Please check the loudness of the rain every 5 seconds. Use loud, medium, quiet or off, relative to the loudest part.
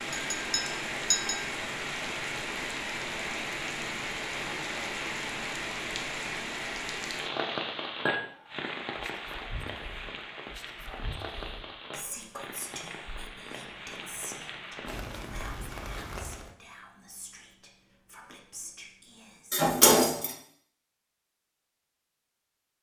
loud, loud, medium, medium, off.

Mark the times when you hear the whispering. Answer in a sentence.
The whispering can be heard from 8.2 to 19.7 s.